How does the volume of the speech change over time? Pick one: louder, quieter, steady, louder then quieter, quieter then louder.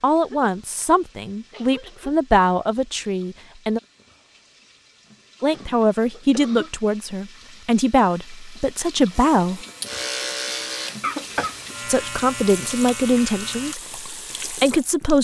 steady.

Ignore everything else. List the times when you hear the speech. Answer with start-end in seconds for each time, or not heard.
0.0-3.8, 5.4-9.6, 11.8-15.2.